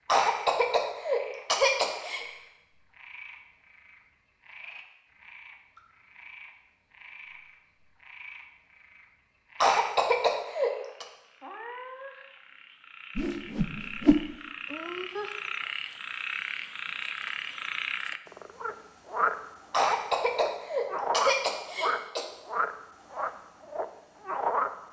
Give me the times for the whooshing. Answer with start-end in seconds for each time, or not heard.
13.2-14.3.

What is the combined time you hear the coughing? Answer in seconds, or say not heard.
6 s.